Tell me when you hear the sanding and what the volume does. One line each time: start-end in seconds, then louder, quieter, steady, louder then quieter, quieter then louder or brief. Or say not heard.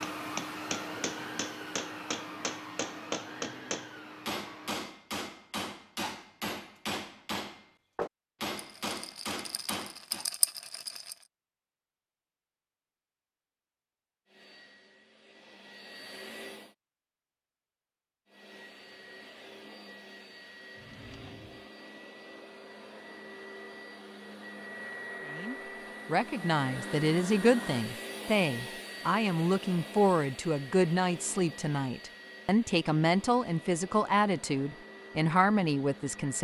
not heard.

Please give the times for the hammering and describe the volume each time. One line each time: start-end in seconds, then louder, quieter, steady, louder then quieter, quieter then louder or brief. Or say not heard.
0.0-10.3 steady.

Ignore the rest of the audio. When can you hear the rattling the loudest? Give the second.
10 s.